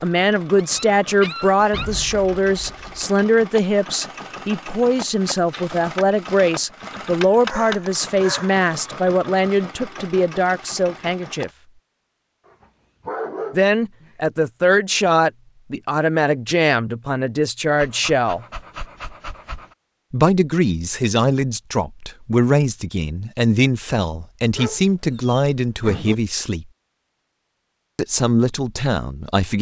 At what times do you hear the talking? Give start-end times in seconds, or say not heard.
0.0-11.5, 13.5-18.4, 20.1-26.6, 27.9-29.5.